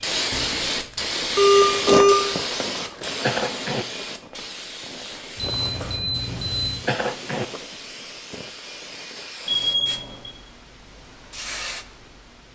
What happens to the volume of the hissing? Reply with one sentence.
The loudness of the hissing goes down.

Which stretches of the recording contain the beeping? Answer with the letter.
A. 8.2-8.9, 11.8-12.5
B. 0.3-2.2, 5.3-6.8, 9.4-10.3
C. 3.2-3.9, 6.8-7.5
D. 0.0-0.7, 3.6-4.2
B.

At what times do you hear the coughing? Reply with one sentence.
You can hear the coughing from 3.2 to 3.9 s and from 6.8 to 7.5 s.